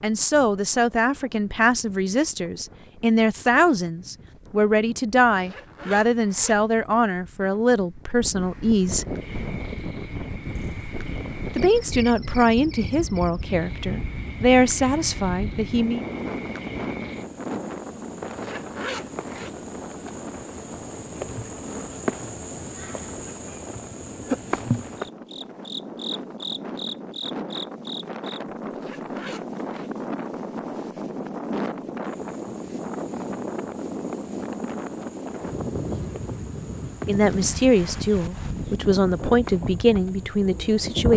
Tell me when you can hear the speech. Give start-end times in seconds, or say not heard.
0.0-9.1, 11.6-16.1, 37.0-41.1.